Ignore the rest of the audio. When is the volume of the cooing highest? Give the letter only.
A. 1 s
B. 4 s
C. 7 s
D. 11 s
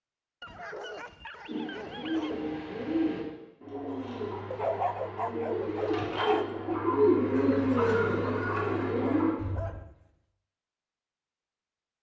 C.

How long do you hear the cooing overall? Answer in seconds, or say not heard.
8 s.